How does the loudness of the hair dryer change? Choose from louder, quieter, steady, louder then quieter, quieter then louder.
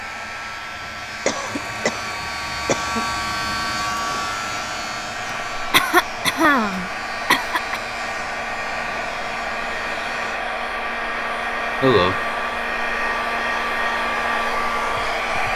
louder.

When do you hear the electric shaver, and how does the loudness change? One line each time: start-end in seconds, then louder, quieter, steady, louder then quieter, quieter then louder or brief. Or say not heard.
0.0-10.4 louder then quieter.